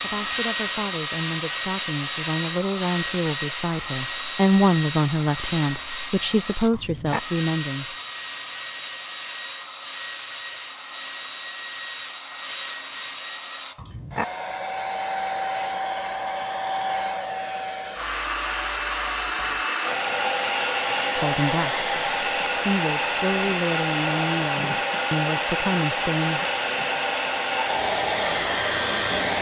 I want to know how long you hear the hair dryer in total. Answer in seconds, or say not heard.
29 s.